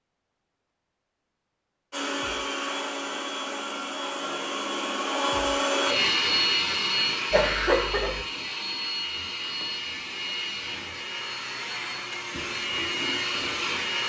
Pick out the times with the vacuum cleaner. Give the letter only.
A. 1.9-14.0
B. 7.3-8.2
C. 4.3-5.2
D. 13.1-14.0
A.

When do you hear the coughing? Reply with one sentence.
You can hear the coughing from 7.3 to 8.2 s.